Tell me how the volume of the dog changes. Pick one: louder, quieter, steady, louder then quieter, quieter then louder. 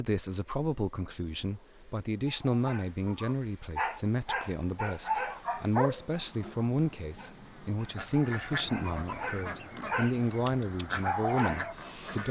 quieter then louder.